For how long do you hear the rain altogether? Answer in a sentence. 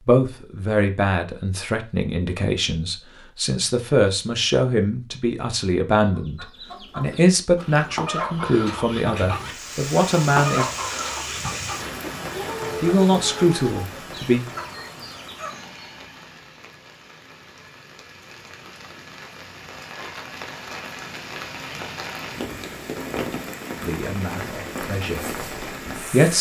The rain can be heard for 17 seconds in total.